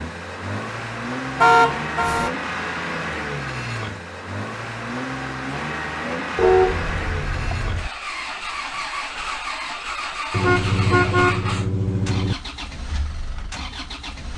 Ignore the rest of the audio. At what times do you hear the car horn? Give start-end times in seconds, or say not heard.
1.4-2.3, 6.3-7.9, 10.3-12.3.